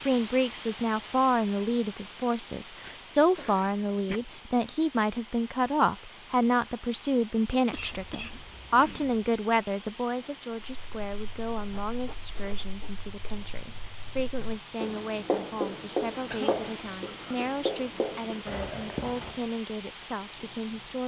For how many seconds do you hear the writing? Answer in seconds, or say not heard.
9 s.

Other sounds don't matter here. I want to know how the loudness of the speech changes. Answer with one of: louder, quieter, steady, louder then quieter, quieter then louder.
quieter.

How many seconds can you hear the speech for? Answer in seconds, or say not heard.
21 s.